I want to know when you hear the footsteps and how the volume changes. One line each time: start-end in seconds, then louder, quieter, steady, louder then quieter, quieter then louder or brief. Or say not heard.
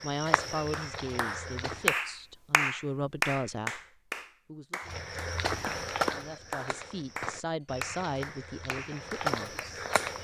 0.0-1.9 brief
4.8-10.1 quieter then louder.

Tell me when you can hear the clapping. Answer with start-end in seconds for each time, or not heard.
0.7-9.8.